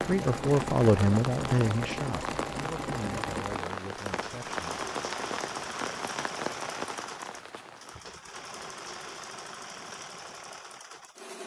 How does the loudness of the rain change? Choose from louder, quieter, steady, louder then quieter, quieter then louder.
steady.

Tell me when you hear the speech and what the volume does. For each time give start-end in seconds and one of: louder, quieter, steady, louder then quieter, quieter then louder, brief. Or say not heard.
0.0-4.8 quieter.